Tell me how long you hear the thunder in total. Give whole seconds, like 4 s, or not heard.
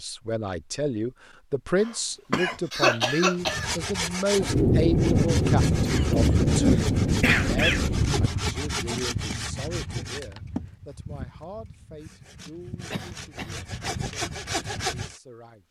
4 s.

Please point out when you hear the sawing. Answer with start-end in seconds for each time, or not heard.
3.4-15.2.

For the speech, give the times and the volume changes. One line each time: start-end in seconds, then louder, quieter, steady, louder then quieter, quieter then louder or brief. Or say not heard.
0.0-15.6 quieter.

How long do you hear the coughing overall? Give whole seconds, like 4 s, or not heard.
5 s.